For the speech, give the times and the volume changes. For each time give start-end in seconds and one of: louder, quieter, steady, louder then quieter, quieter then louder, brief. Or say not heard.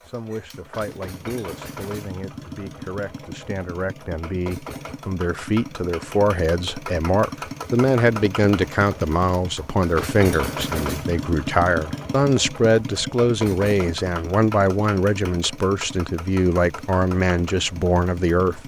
0.0-18.6 louder.